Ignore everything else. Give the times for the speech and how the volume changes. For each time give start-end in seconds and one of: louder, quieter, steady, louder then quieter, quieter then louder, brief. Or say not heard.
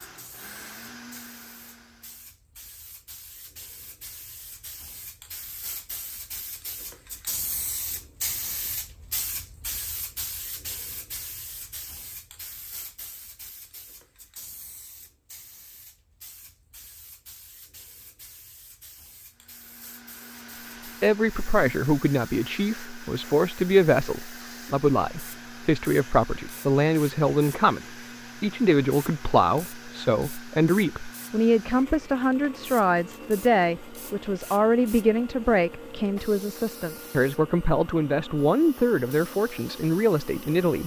21.0-40.8 steady.